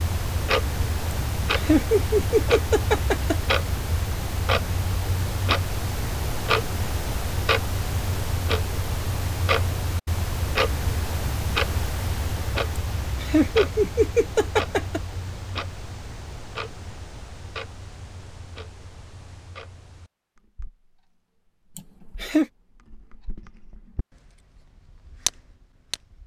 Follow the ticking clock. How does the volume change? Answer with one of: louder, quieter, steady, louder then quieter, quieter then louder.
quieter.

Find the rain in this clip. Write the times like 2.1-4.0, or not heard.
not heard.